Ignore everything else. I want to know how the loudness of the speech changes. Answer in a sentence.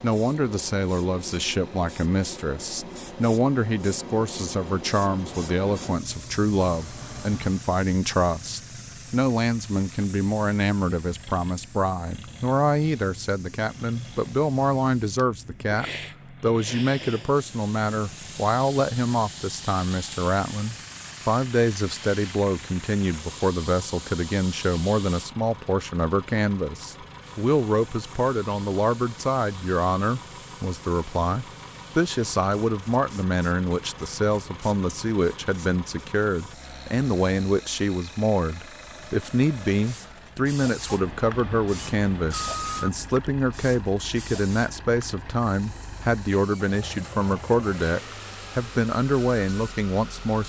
The loudness of the speech stays about the same.